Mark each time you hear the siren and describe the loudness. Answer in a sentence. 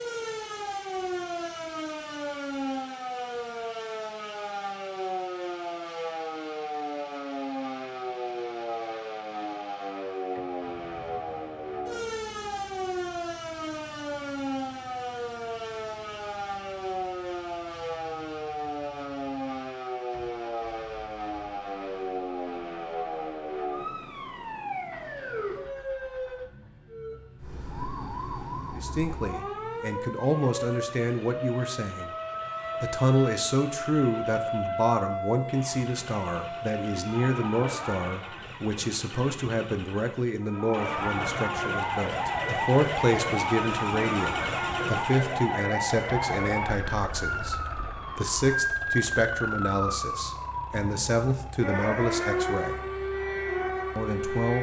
The siren can be heard from 0.0 to 38.5 s, at a steady volume; and from 40.4 to 54.5 s, at a steady volume.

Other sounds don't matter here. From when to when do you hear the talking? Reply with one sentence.
You can hear the talking from 28.8 to 32.1 s, from 32.8 to 52.9 s and from 54.0 to 54.5 s.